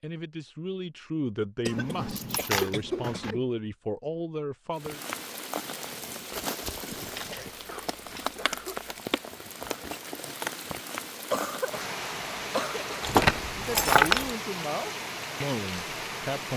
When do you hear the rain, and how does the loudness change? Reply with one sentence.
The rain can be heard from 4.8 to 16.5 s, at a steady volume.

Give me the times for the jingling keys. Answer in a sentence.
The jingling keys can be heard from 1.7 to 3.4 s, from 7.0 to 8.8 s and from 13.0 to 14.3 s.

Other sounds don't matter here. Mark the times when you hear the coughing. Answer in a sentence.
The coughing can be heard from 1.6 to 3.5 s, from 7.3 to 8.9 s, from 11.3 to 11.9 s and from 12.5 to 13.1 s.